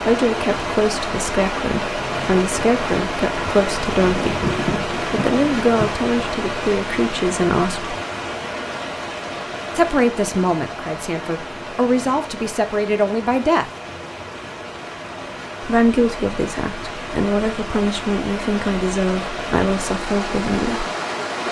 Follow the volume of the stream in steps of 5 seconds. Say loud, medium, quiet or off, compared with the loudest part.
loud, loud, medium, medium, loud.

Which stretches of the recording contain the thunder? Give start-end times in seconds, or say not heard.
4.0-5.9.